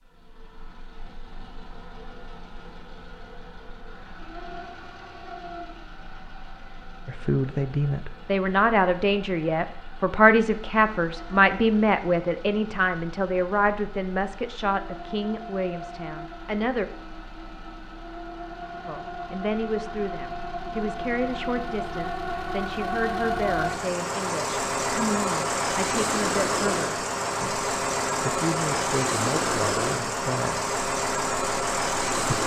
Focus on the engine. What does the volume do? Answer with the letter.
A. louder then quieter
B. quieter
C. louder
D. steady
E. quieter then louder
C.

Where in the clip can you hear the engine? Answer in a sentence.
The engine can be heard from 0.0 to 32.4 s.